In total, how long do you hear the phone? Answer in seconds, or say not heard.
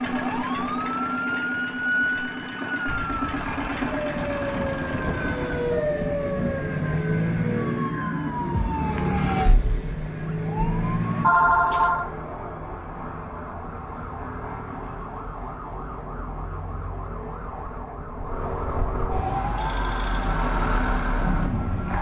4 s.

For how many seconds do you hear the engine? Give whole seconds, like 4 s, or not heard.
14 s.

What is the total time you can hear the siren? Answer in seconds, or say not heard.
22 s.